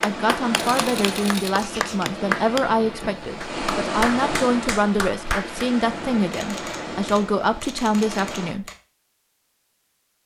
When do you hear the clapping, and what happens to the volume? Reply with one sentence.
The clapping can be heard from 0.0 to 5.7 s, getting louder then quieter.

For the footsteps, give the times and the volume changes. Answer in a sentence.
The footsteps can't be heard in this clip.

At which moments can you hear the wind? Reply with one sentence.
The wind can be heard from 0.0 to 8.6 s.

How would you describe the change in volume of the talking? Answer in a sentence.
The loudness of the talking stays about the same.